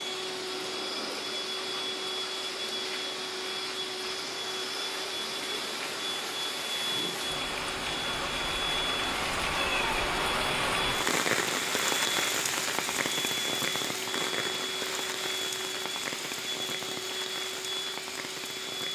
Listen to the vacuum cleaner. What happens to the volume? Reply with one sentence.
The loudness of the vacuum cleaner stays about the same.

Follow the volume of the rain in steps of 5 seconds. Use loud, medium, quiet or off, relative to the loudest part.
medium, loud, loud, medium.